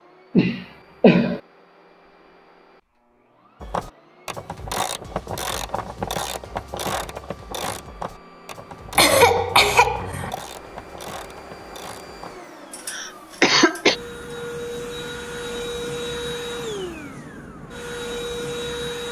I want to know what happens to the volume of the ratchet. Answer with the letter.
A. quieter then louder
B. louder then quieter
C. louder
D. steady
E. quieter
E.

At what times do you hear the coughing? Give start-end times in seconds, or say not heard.
0.3-1.4, 8.9-10.3, 12.9-13.9.